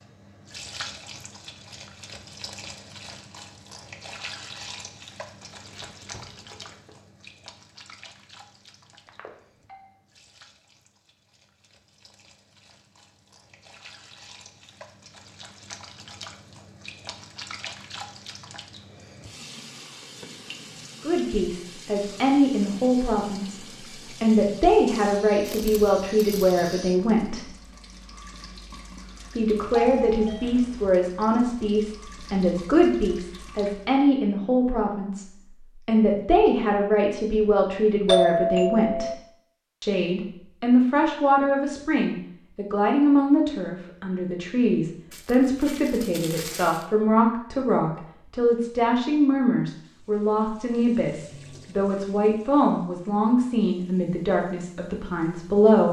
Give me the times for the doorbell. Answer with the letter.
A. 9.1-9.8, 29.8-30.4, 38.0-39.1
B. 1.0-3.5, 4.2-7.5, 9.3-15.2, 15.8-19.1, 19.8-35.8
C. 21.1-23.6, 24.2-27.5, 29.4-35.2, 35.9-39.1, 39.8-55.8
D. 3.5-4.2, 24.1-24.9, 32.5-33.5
A.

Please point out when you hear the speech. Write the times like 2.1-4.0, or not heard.
21.1-23.6, 24.2-27.5, 29.4-35.2, 35.9-39.1, 39.8-55.8.